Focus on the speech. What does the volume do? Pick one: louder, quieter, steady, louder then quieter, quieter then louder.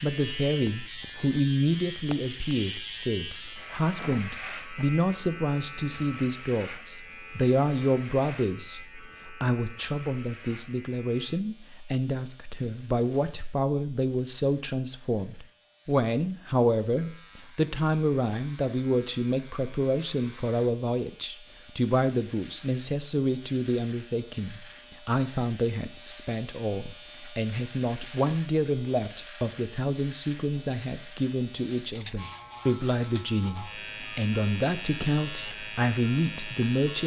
steady.